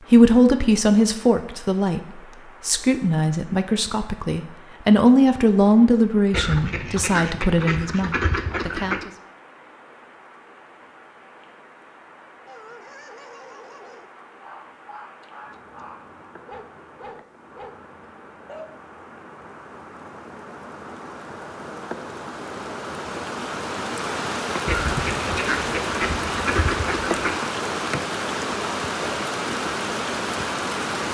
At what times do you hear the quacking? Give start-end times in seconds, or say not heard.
6.3-9.1, 24.6-27.4.